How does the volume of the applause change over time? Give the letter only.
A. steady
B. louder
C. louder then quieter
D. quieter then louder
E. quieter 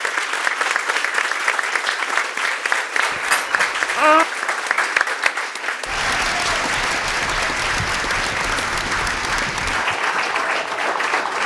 A.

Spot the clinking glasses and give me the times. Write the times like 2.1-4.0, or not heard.
3.1-4.2.